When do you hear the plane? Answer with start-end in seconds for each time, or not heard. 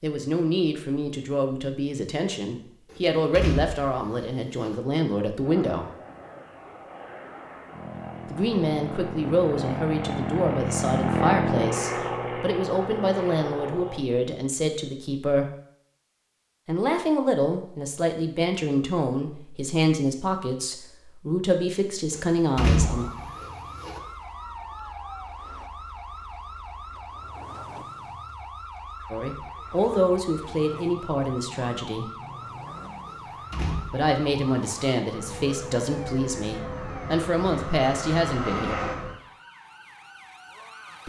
5.4-14.1, 35.0-39.1.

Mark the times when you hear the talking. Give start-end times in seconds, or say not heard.
0.0-5.9, 8.3-15.5, 16.6-23.1, 29.1-32.1, 33.9-38.9.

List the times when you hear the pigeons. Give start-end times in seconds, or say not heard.
not heard.